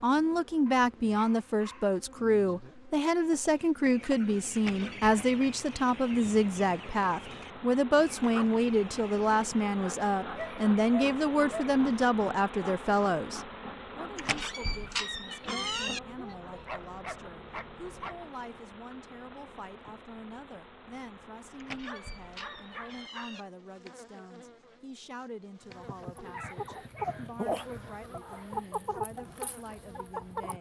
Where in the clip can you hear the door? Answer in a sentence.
The door can be heard from 4.5 to 5.2 s, from 14.2 to 16.0 s and from 21.6 to 23.4 s.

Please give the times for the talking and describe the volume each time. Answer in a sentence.
You can hear the talking from 0.0 to 30.5 s, getting quieter.